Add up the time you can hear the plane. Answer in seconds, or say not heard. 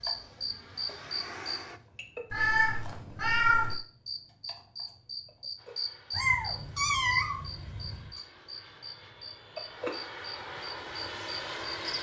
8 s.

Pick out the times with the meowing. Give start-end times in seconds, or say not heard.
2.3-3.8, 6.1-8.1.